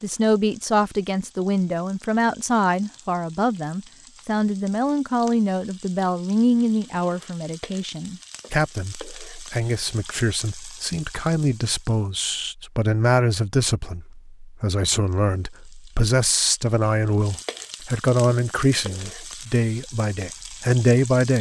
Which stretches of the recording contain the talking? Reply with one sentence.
You can hear the talking from 0.0 to 21.3 s.